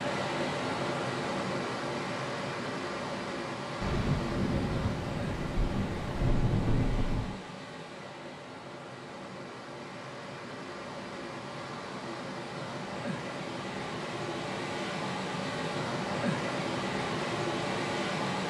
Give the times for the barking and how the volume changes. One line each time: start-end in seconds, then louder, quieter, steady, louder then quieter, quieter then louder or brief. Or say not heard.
not heard.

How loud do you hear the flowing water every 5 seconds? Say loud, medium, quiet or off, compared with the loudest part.
loud, medium, medium, loud.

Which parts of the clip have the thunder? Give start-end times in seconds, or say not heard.
3.8-7.4.